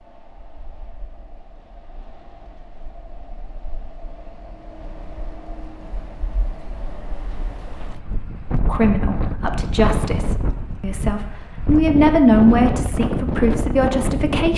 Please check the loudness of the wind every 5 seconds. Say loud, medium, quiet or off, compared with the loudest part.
quiet, medium, loud.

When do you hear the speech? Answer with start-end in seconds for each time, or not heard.
8.5-14.5.